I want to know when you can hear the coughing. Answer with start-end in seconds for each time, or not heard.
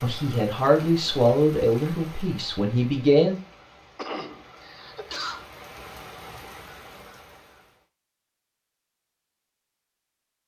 4.0-5.5.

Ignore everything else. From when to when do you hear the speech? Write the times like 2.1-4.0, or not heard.
0.0-3.4.